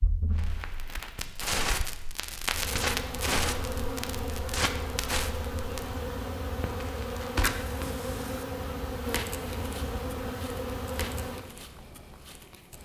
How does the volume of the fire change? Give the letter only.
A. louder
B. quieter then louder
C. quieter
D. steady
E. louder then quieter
C.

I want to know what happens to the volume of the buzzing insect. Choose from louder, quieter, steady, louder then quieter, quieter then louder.
steady.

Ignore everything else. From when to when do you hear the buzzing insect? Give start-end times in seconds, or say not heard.
2.5-11.6.